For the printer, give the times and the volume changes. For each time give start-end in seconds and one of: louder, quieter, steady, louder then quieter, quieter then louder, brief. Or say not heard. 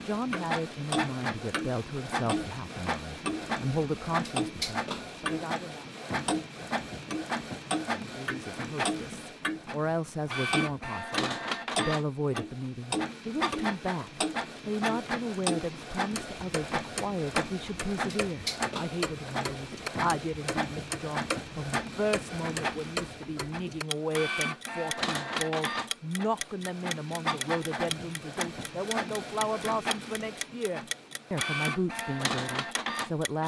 0.0-33.4 steady.